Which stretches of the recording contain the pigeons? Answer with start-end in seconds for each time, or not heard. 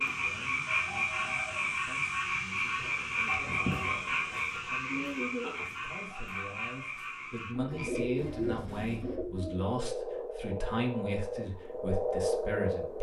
2.8-4.5, 7.5-9.7.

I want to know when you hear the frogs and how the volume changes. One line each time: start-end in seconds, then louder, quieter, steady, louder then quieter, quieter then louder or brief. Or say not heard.
0.0-12.9 quieter then louder.